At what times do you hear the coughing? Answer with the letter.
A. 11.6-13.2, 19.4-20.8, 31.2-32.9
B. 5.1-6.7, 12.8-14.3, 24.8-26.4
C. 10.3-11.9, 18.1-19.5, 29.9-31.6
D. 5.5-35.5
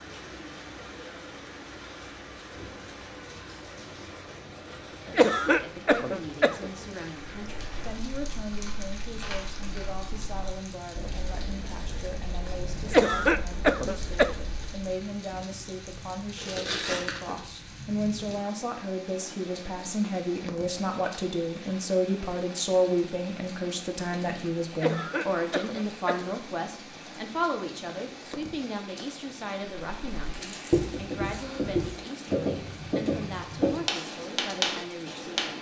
B.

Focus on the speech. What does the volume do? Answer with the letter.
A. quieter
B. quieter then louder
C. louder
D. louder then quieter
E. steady
D.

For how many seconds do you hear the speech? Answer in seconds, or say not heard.
30 s.